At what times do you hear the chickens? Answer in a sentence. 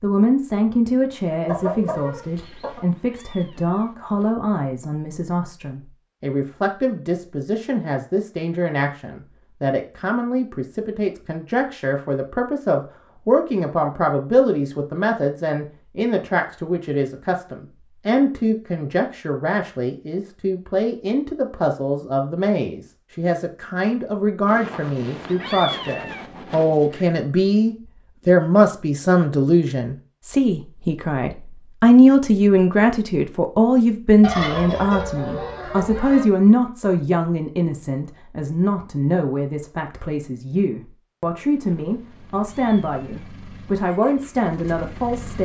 The chickens can be heard from 1.4 to 2.8 s and from 34.2 to 36.2 s.